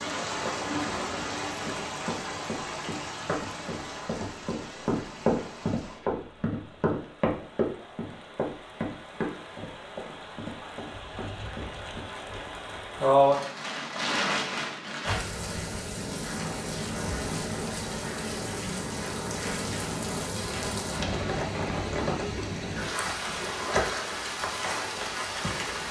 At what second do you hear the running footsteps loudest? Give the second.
5 s.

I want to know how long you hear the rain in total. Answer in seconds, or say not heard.
26 s.